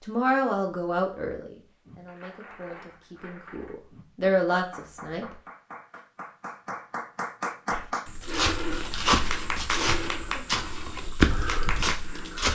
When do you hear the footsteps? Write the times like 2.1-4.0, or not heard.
7.7-12.5.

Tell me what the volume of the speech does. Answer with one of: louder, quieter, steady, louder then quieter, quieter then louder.
quieter then louder.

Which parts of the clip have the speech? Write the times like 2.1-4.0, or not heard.
0.0-5.3.